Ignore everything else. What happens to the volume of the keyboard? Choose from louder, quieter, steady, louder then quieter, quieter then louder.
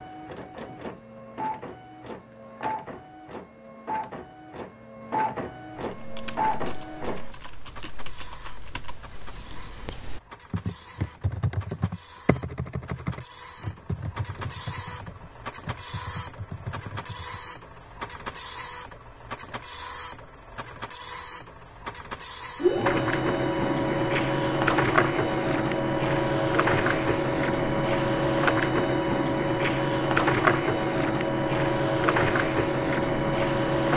louder then quieter.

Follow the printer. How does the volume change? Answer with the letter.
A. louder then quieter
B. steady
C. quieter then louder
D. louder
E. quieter
C.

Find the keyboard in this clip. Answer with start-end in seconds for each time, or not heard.
5.9-17.5.